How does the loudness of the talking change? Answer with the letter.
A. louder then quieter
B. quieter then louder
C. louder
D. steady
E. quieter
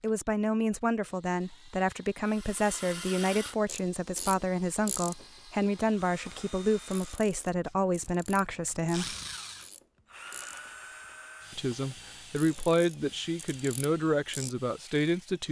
D.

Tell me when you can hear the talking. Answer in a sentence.
The talking can be heard from 0.0 to 9.2 s and from 11.5 to 15.4 s.